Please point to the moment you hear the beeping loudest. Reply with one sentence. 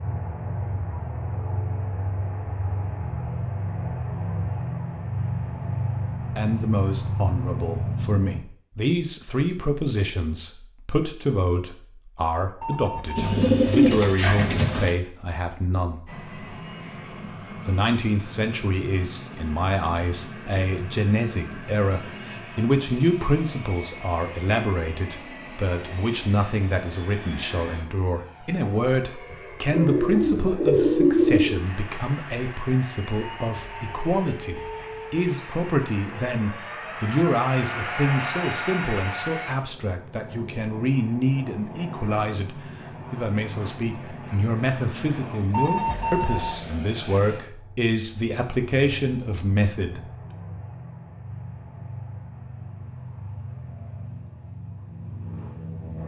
The loudest moment of the beeping is at 46 seconds.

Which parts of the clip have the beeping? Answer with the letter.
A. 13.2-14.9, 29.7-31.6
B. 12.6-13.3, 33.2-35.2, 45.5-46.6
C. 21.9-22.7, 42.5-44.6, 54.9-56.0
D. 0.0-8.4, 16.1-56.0
B.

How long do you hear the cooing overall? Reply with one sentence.
The cooing can be heard for 4 seconds in total.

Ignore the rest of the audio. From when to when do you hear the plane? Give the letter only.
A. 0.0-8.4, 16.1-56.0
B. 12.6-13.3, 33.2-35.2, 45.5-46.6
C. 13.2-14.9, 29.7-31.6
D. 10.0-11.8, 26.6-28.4
A.